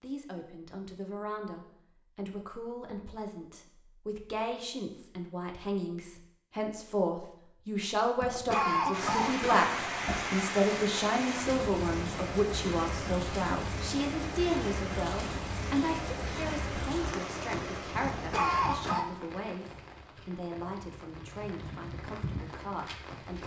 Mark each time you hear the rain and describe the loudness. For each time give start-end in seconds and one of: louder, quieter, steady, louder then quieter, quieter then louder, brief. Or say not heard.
8.9-23.4 quieter.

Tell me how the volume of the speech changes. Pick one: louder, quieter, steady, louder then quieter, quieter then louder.
louder then quieter.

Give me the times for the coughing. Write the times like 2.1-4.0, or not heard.
8.2-10.2, 18.0-19.1.